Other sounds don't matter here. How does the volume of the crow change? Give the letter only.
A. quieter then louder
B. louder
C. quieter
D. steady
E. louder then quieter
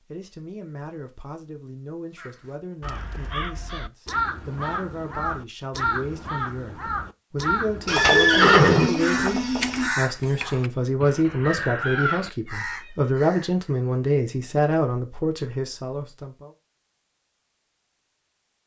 D.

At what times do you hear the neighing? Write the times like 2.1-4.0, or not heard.
7.8-9.8.